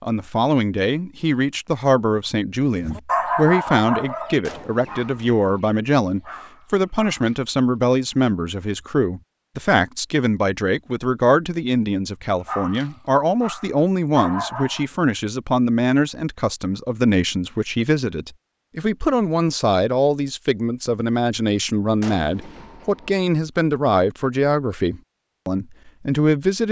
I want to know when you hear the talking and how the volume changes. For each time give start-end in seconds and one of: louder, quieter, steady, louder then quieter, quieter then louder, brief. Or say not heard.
0.0-26.6 steady.